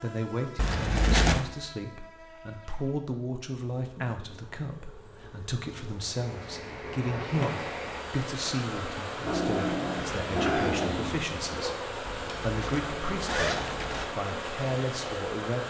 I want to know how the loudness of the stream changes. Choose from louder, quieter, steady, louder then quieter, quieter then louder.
steady.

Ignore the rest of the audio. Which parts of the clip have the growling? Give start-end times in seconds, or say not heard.
9.2-11.3.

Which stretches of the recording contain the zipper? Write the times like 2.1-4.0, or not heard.
0.6-1.4, 12.1-14.1.